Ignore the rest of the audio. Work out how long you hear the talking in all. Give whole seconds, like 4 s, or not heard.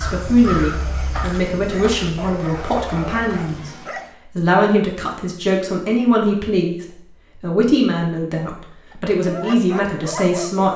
10 s.